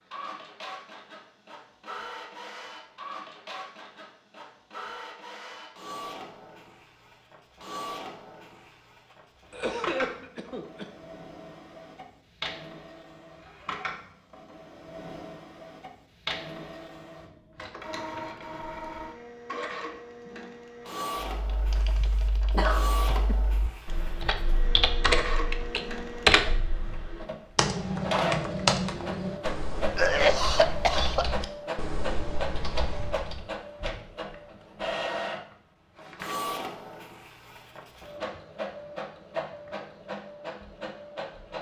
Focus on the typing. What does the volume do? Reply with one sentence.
The loudness of the typing goes up, then down.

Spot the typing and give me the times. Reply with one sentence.
You can hear the typing from 21.4 to 33.5 s.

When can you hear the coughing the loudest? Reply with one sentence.
The loudest moment of the coughing is at 30 seconds.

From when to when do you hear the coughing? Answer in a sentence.
You can hear the coughing from 9.1 to 10.8 s, from 21.8 to 23.4 s and from 29.9 to 31.2 s.